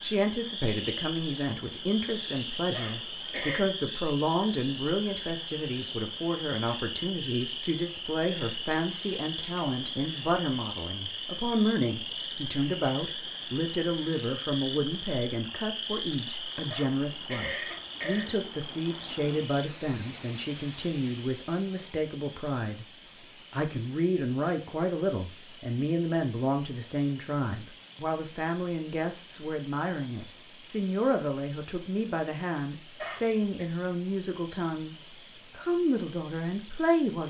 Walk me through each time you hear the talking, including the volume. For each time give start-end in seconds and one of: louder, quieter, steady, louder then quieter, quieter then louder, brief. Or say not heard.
0.0-22.9 steady
23.5-37.2 steady.